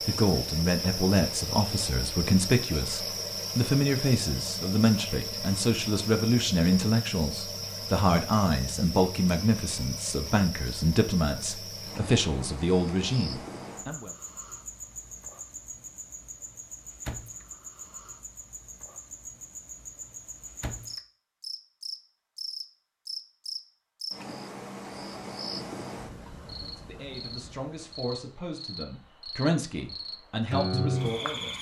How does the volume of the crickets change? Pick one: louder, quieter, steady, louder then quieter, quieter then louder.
quieter then louder.